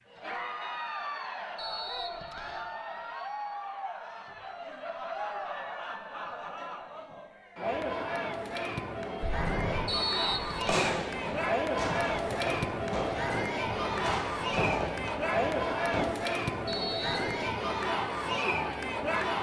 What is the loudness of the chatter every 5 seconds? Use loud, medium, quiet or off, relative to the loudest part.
medium, medium, loud, loud.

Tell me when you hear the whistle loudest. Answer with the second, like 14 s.
10 s.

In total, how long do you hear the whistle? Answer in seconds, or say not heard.
3 s.